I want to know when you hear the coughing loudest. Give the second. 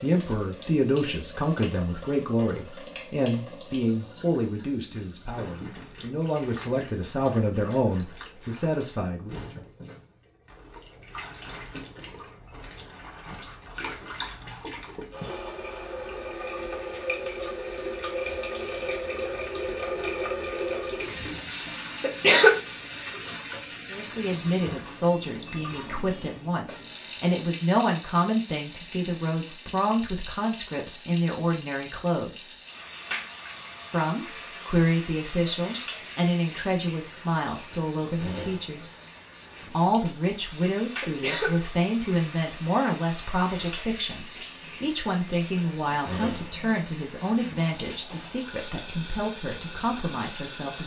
22 s.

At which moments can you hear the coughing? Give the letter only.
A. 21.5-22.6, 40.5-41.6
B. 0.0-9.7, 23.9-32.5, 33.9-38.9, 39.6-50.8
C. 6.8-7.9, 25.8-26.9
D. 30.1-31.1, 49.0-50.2
A.